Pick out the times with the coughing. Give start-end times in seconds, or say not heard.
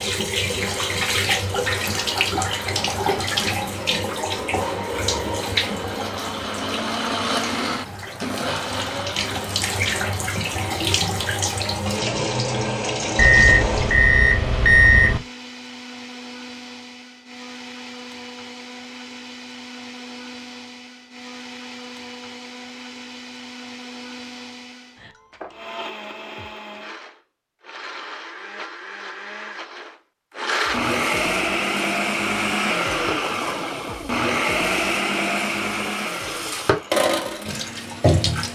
not heard.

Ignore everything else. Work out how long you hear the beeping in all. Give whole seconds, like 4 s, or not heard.
2 s.